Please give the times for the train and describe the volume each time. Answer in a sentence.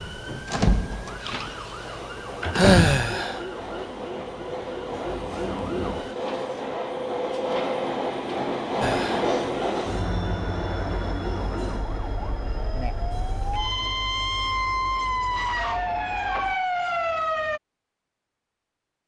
You can hear the train from 0.1 to 16.6 s, getting louder then quieter.